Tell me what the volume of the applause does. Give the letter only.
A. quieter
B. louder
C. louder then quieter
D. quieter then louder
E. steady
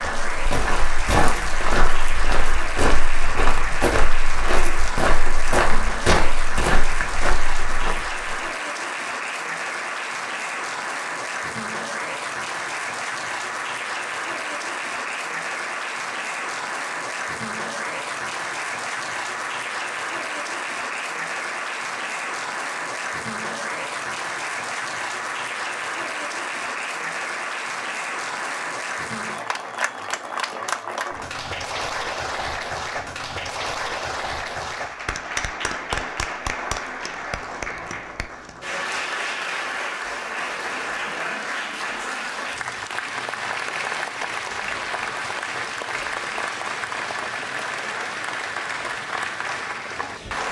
E.